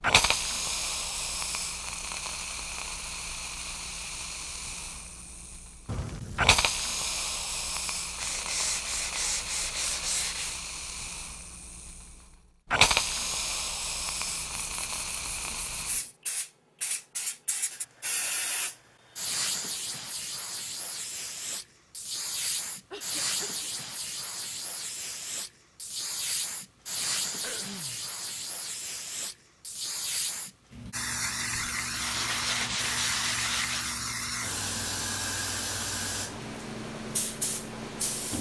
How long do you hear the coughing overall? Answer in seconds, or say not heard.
2 s.